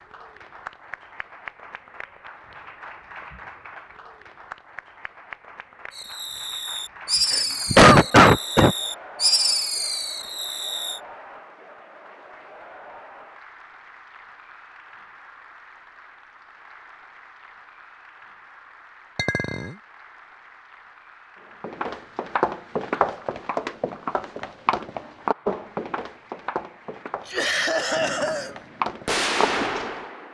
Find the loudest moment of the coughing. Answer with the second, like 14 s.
8 s.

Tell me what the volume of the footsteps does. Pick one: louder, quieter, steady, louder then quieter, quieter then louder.
quieter then louder.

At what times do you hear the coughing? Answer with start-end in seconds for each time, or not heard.
7.3-8.8, 27.2-28.6.